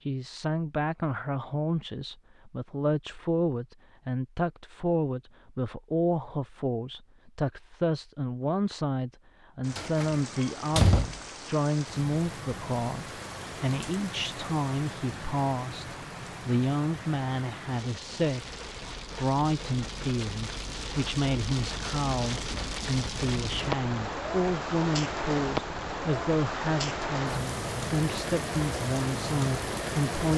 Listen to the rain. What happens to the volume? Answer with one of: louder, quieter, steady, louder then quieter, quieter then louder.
louder.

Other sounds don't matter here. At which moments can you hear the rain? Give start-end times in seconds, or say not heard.
9.6-30.3.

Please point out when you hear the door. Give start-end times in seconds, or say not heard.
9.8-11.2.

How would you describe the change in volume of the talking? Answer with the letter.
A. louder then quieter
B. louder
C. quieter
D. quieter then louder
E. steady
E.